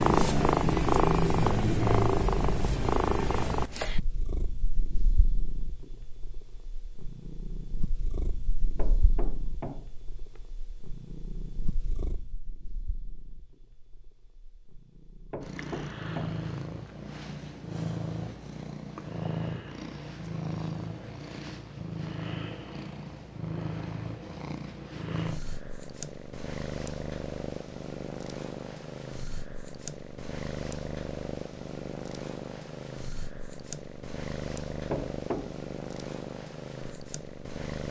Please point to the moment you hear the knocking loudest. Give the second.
35 s.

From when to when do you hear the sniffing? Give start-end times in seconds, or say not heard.
not heard.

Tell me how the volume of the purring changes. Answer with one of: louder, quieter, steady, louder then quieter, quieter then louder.
quieter then louder.